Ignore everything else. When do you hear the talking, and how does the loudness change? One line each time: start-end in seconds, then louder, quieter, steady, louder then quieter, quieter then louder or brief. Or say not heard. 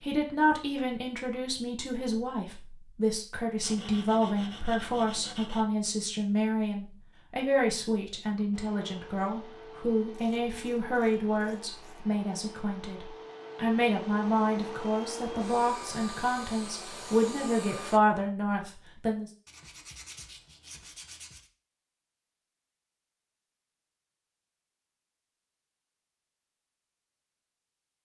0.0-19.3 steady.